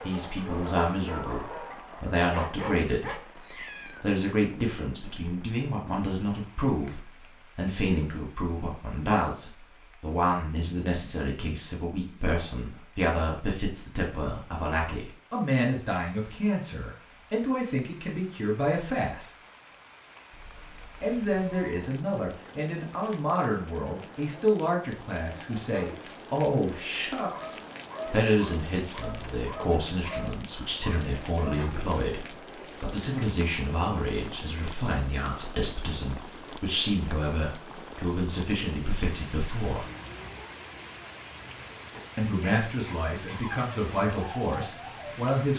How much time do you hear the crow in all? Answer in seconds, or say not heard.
not heard.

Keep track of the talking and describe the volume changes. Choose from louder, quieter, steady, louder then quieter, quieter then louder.
steady.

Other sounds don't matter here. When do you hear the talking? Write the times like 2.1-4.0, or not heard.
0.0-19.3, 21.0-39.9, 42.1-45.5.